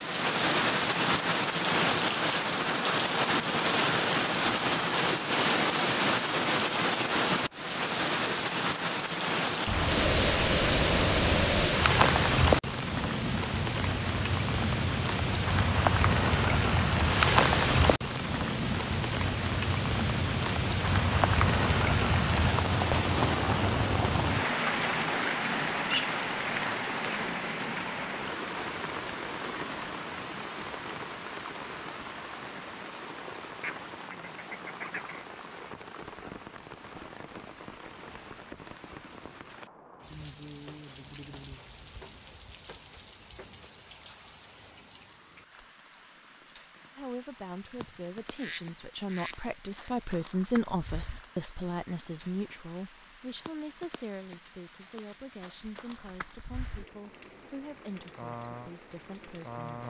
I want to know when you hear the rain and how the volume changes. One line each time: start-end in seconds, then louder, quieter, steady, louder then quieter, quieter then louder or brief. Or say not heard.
0.0-59.8 quieter.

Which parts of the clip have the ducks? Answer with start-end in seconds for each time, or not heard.
9.7-11.7, 33.6-35.2, 47.8-49.9.